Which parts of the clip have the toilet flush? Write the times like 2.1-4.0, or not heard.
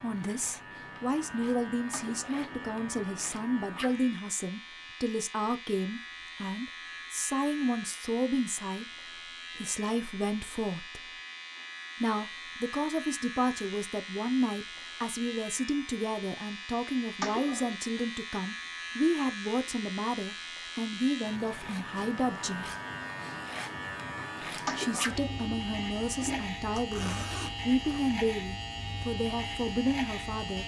1.9-2.7, 17.2-17.8, 24.6-26.4.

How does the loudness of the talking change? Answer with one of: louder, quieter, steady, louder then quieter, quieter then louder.
steady.